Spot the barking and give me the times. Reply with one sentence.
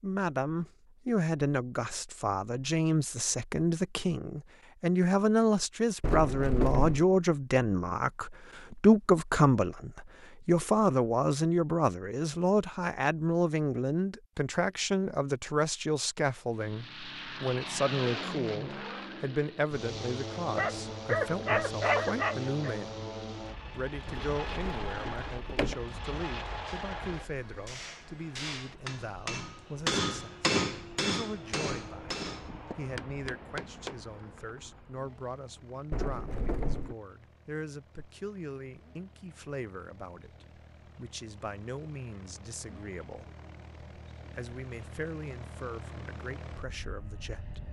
The barking can be heard from 20.4 to 22.8 s.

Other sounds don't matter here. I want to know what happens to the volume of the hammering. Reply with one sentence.
The volume of the hammering goes up, then down.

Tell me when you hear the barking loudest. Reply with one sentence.
The volume of the barking peaks at 22 seconds.